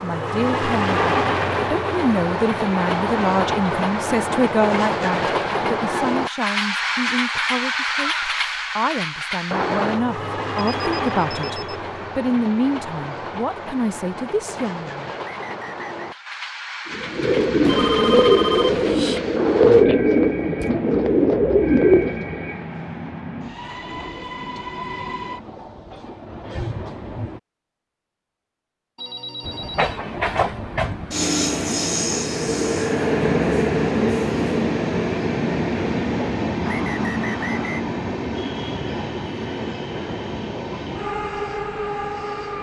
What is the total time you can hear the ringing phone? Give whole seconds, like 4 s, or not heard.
4 s.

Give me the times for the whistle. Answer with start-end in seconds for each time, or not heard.
15.2-15.9, 36.6-37.9.